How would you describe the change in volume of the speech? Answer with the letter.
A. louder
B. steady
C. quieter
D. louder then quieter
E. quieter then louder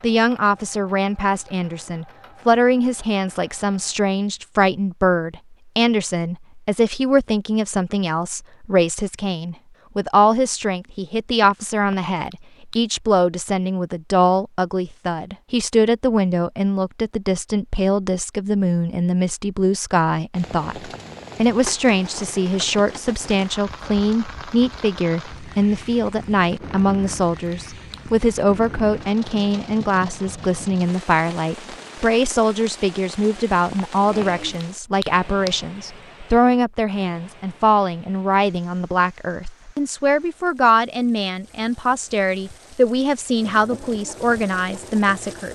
B.